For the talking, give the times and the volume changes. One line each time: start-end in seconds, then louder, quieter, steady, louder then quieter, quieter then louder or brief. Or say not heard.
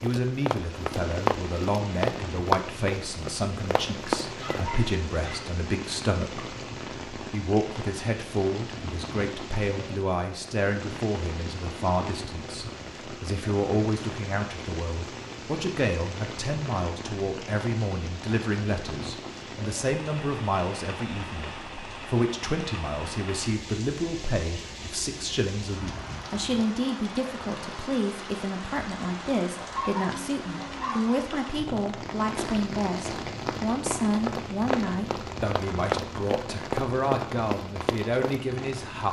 0.0-39.0 steady.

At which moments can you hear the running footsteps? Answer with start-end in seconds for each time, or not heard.
0.0-4.7, 33.2-38.4.